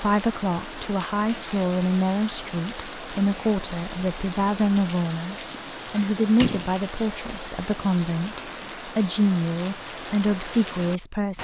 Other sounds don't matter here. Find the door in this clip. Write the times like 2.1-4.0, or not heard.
5.5-6.8.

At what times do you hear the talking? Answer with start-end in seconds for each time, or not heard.
0.0-11.4.